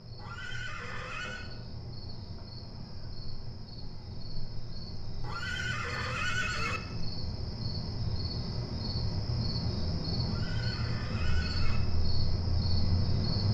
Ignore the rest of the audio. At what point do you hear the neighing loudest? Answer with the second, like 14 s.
6 s.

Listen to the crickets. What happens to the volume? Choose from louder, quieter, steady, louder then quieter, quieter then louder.
louder.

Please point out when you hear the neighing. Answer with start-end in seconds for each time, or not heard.
0.1-1.5, 5.2-6.8, 10.2-11.8.